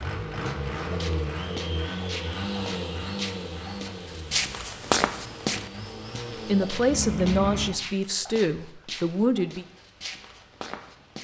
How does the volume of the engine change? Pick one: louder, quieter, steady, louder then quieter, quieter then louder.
quieter then louder.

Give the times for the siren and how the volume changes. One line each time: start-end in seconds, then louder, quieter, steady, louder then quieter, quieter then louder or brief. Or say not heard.
not heard.